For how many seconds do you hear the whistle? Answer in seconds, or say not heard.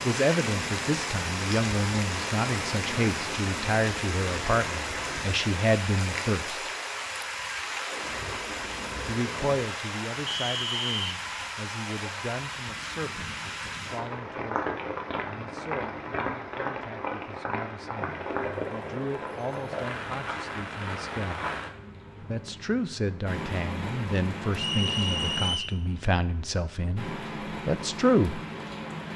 2 s.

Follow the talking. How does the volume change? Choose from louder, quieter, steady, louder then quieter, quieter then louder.
quieter then louder.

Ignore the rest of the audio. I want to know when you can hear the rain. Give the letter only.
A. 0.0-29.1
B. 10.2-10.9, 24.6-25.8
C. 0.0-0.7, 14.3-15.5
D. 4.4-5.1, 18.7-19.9
A.